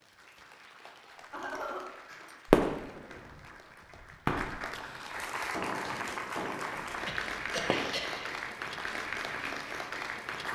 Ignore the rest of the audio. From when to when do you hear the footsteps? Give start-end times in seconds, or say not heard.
not heard.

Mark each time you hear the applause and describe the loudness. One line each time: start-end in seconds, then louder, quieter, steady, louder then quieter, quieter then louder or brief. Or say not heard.
0.0-10.5 louder.